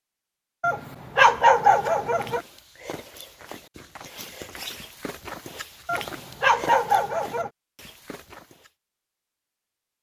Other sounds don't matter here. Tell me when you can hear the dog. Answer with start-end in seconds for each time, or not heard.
0.6-2.4, 5.8-7.5.